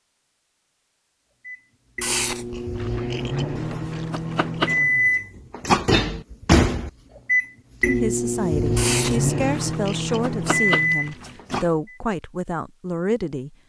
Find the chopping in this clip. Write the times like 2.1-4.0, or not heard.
3.9-4.8, 10.2-11.7.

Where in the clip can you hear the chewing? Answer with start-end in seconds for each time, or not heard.
2.0-4.8, 8.8-11.3.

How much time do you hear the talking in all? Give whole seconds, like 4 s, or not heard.
6 s.